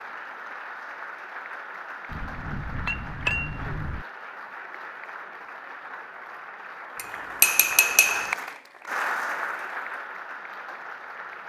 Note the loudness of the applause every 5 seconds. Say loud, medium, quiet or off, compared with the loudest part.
medium, loud, medium.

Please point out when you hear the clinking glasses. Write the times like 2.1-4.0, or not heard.
2.1-4.0, 7.0-8.3.